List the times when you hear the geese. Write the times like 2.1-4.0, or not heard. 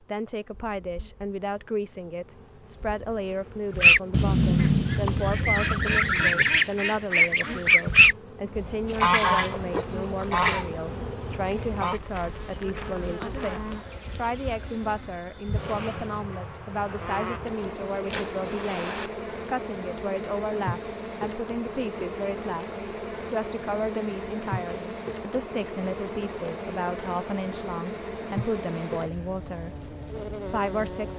3.7-12.0.